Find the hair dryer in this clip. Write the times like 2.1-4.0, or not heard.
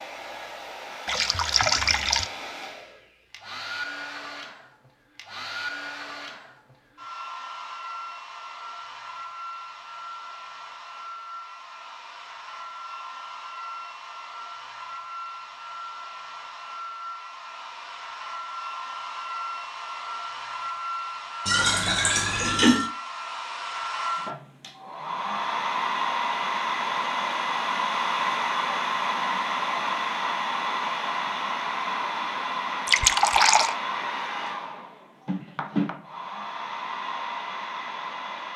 0.0-38.5.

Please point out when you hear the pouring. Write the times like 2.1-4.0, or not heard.
1.1-2.3, 21.4-22.9, 32.9-33.8.